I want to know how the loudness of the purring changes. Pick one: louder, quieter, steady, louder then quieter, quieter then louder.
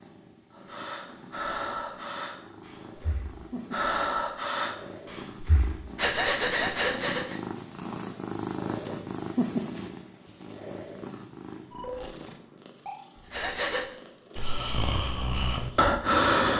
louder then quieter.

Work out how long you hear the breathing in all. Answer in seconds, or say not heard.
10 s.